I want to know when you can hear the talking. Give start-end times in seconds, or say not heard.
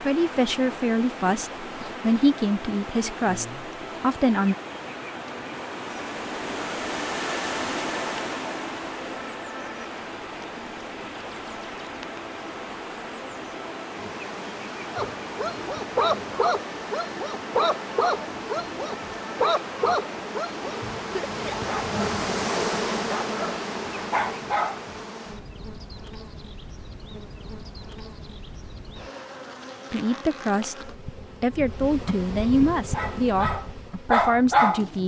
0.0-4.5, 29.9-35.0.